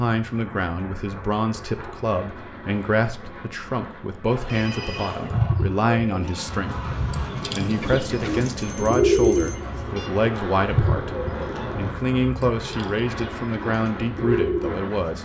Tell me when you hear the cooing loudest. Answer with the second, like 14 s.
9 s.